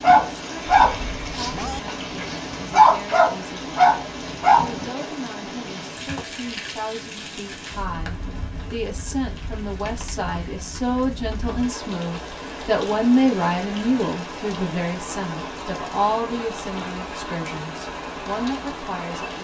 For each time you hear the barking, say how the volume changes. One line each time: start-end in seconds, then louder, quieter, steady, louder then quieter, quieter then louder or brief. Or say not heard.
0.0-4.8 quieter then louder.